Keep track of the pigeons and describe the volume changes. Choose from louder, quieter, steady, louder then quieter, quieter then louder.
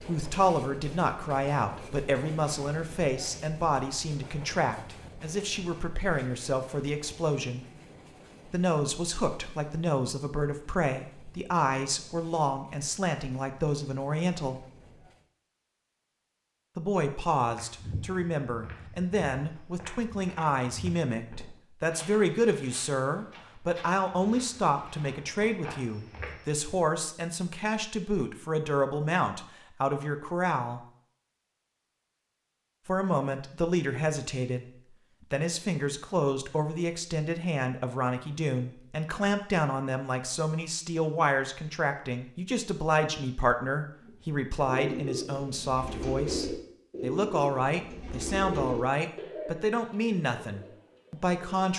quieter.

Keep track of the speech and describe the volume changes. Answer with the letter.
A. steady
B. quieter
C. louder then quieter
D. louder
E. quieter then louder
A.